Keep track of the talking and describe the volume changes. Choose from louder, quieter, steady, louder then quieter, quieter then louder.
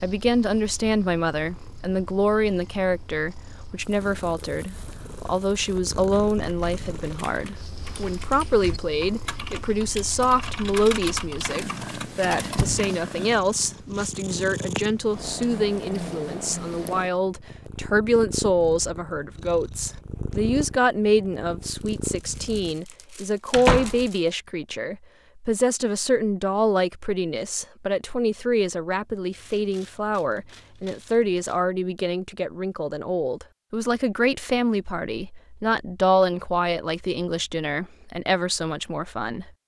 steady.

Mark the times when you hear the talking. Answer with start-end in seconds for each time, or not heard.
0.0-39.5.